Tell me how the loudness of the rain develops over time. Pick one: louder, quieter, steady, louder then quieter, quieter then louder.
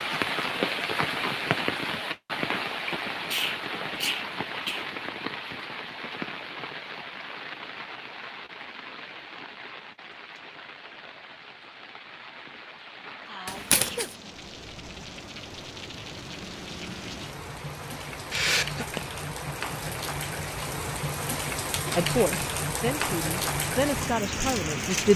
quieter then louder.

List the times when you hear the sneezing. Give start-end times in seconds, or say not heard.
3.3-4.9, 13.2-14.1, 18.3-19.0.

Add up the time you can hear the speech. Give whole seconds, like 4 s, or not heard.
3 s.